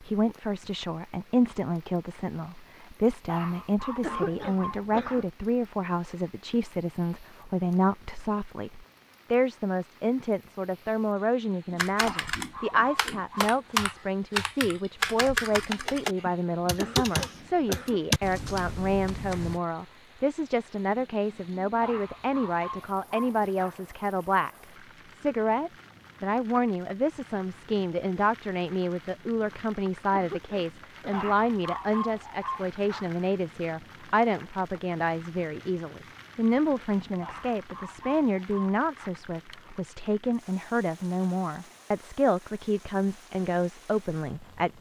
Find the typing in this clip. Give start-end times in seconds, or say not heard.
11.7-19.6.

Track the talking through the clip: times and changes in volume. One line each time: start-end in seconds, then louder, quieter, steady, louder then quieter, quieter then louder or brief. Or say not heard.
0.0-24.5 steady
25.1-44.7 steady.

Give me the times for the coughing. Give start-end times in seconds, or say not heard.
4.0-5.2, 16.8-18.0, 30.1-31.3.